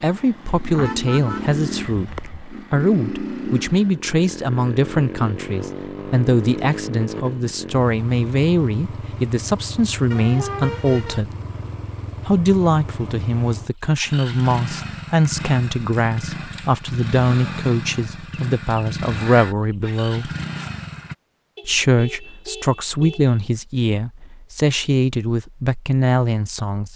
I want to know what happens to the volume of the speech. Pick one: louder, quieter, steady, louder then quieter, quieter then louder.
steady.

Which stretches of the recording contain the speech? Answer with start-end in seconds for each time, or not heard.
0.0-11.3, 12.2-20.3, 21.6-26.9.